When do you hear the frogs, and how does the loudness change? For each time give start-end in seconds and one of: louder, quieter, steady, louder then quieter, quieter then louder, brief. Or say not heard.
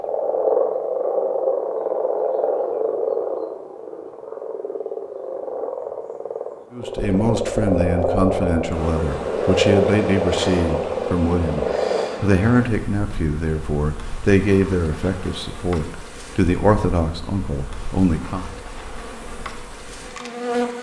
0.0-12.1 quieter then louder.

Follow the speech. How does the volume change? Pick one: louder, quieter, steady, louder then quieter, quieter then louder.
steady.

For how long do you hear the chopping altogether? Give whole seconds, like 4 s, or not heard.
not heard.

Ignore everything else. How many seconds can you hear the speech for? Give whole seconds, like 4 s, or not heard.
12 s.